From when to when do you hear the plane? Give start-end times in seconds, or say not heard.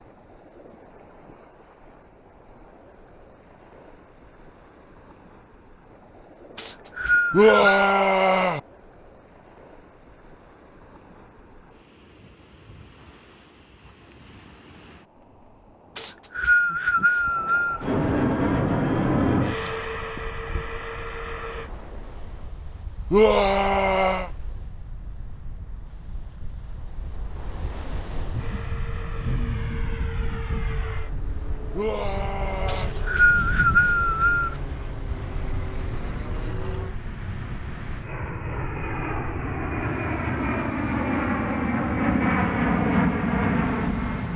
17.8-21.7, 28.4-44.3.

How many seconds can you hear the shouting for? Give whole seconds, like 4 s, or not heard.
4 s.